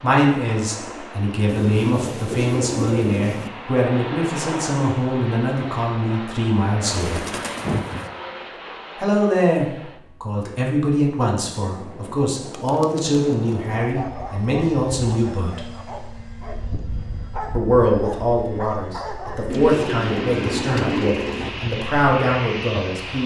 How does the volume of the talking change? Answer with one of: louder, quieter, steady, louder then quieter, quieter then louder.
steady.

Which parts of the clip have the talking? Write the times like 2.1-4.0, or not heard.
0.0-7.2, 8.9-15.6, 17.5-23.2.